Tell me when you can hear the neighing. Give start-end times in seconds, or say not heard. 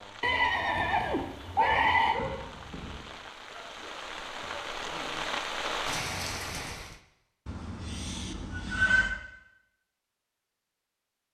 0.2-2.2, 7.5-9.2.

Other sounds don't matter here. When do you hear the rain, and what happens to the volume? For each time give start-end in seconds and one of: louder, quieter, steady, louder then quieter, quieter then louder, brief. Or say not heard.
0.0-7.0 louder.